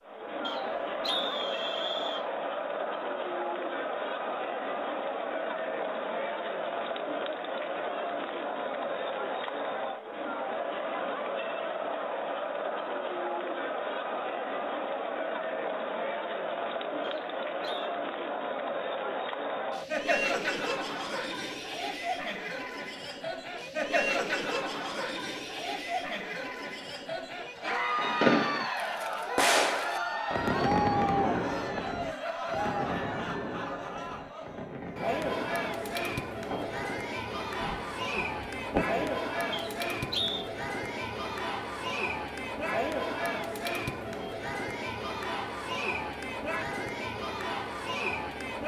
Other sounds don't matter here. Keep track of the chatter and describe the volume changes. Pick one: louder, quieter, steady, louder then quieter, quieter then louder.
steady.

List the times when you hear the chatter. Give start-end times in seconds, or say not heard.
0.1-48.6.